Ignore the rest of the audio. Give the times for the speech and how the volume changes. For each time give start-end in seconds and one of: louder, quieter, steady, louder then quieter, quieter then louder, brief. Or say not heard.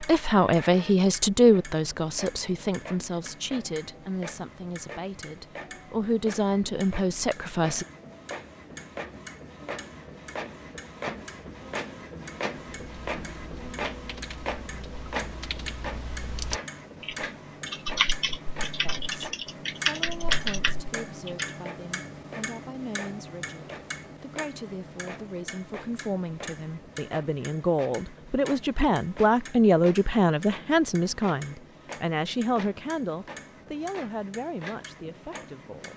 0.0-7.8 quieter then louder
18.8-35.9 louder then quieter.